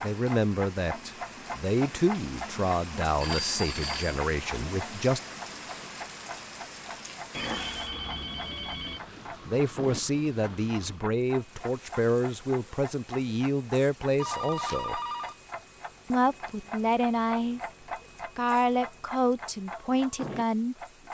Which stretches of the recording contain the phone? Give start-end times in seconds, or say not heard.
3.2-4.2, 7.3-9.0, 14.2-15.3.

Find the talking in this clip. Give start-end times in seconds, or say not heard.
0.0-5.2, 9.4-15.0, 16.1-21.0.